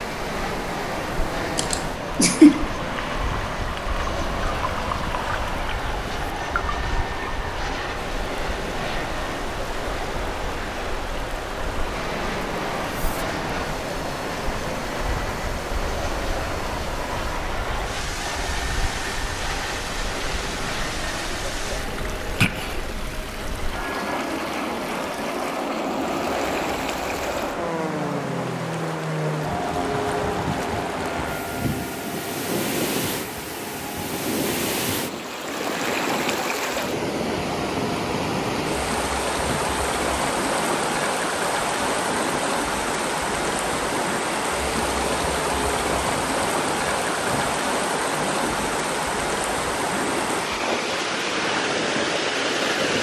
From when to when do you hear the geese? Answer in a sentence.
The geese can't be heard in this clip.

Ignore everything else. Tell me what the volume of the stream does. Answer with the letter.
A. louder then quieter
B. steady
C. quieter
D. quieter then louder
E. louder
E.